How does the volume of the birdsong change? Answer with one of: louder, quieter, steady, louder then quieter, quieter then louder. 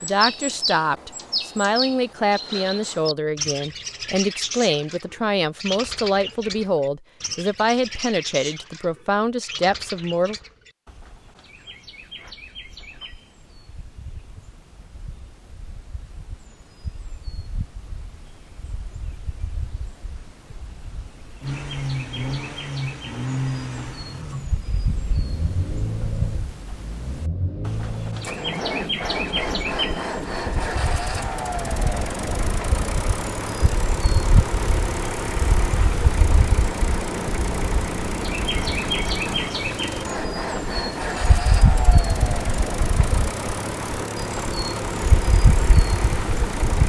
quieter then louder.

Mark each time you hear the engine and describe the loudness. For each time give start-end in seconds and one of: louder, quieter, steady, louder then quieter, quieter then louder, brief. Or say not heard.
21.4-46.8 steady.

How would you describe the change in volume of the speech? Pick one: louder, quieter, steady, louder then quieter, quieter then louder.
steady.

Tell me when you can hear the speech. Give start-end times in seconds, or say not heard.
0.0-10.3.